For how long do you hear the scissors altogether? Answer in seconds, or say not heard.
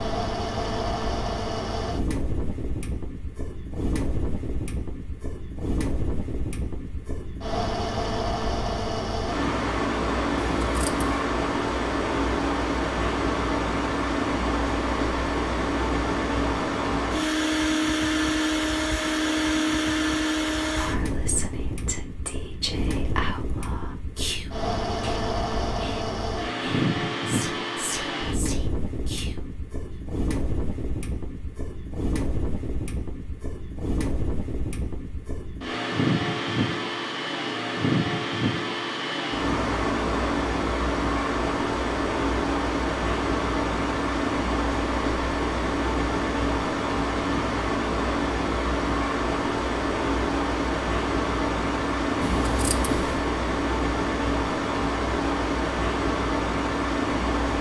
2 s.